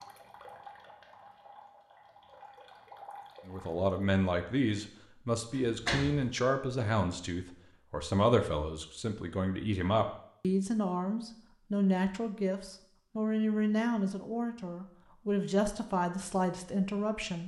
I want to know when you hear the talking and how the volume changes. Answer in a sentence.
You can hear the talking from 3.5 to 17.4 s, at a steady volume.